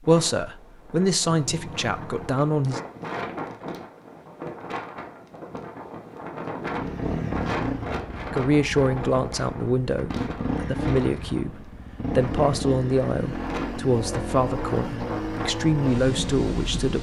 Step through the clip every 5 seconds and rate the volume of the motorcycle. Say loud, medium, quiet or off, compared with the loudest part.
off, loud, loud, loud.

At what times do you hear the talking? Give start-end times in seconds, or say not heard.
0.1-2.8, 8.3-16.9.